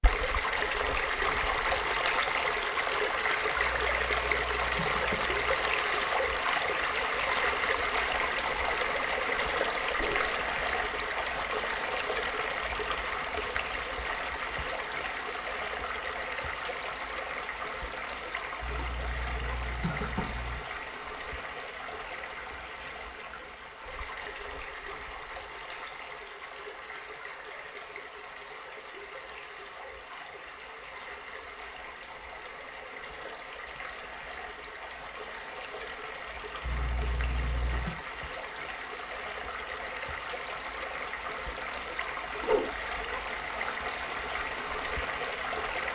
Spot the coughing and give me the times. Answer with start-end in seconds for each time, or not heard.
3.5-5.5, 18.6-20.6, 36.6-38.0.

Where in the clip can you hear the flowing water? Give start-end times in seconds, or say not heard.
0.0-45.9.